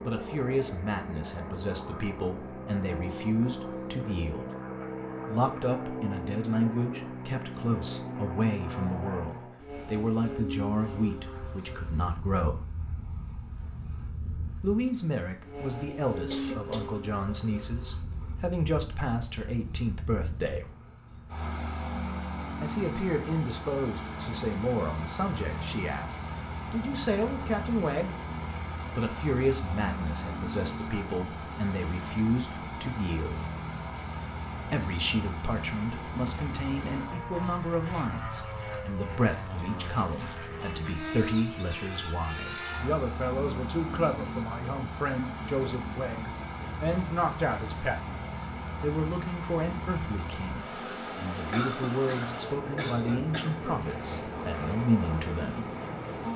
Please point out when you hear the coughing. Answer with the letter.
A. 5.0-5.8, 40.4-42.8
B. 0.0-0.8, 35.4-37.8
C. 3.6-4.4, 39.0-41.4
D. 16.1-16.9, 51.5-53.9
D.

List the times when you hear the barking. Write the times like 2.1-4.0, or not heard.
not heard.